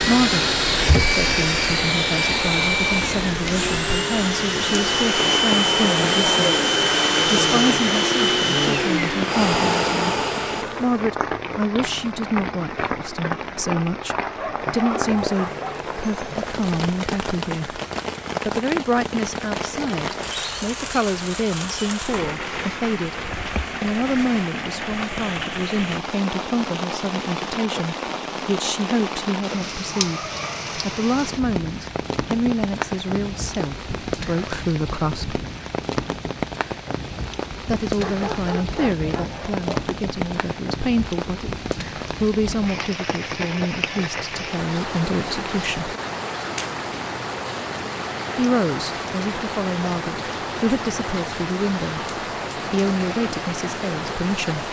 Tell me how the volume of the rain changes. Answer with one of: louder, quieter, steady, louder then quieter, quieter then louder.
steady.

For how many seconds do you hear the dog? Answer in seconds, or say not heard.
3 s.